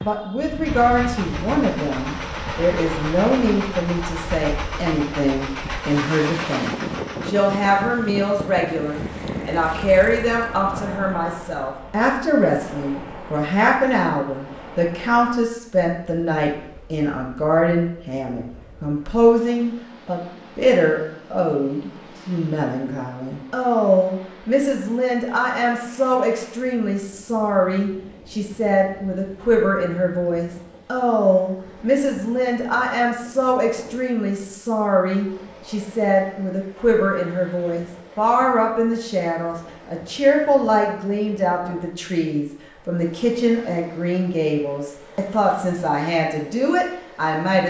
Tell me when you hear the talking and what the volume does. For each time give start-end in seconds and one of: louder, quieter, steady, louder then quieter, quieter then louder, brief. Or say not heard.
0.0-47.6 steady.